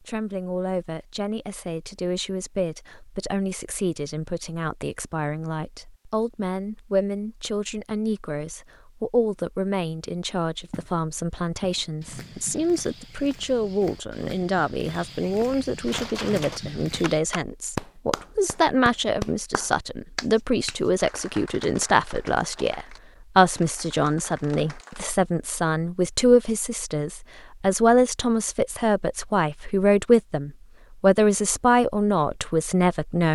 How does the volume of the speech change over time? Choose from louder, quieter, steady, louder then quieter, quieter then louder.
louder.